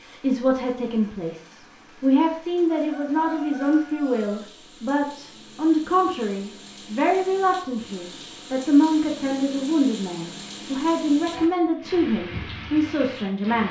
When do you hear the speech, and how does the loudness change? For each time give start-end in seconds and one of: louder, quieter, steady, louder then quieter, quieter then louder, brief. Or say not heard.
0.0-13.6 steady.